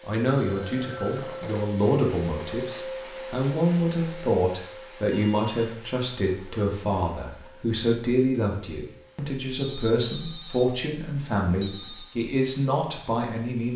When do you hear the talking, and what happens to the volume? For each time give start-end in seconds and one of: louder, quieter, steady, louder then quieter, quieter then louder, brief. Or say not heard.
0.1-13.7 steady.